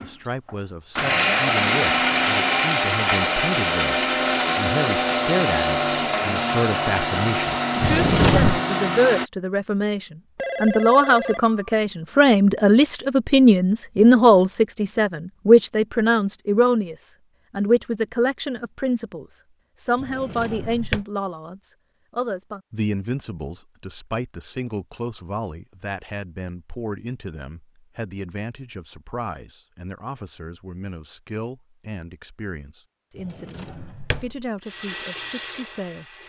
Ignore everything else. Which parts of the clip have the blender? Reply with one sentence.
You can hear the blender from 0.0 to 9.3 s.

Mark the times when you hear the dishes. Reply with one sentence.
The dishes can't be heard in this clip.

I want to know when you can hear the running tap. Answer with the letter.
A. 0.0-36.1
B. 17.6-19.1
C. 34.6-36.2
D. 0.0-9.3
C.